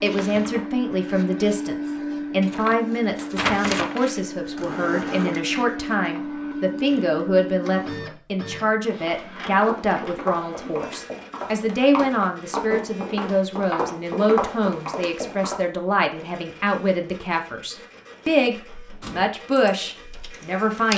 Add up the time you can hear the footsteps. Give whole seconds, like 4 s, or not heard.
7 s.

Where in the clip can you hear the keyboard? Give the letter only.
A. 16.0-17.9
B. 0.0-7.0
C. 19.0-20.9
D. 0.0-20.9
C.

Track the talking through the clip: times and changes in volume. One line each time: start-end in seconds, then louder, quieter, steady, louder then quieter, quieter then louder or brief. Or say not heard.
0.0-20.9 steady.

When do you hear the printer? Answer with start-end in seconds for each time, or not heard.
0.0-20.9.